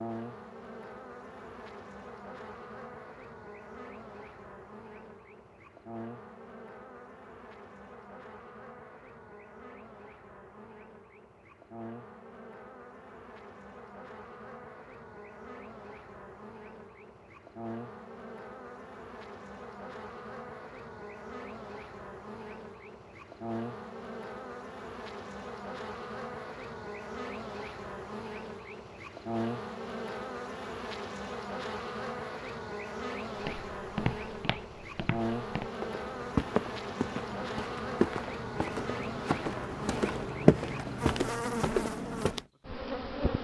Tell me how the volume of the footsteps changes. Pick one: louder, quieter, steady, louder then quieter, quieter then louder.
louder.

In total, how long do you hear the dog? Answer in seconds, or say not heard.
not heard.